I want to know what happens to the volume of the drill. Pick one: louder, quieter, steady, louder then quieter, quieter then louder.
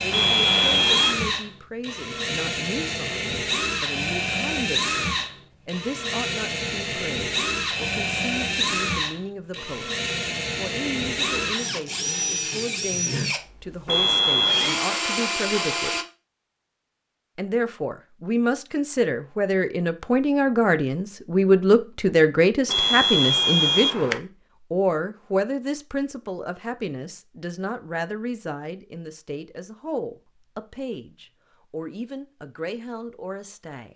steady.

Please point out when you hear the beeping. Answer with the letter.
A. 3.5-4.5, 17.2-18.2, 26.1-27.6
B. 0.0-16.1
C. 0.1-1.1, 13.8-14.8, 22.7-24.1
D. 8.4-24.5
C.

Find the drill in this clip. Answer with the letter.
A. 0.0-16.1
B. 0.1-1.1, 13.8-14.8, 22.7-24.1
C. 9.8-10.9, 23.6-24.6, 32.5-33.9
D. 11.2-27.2
A.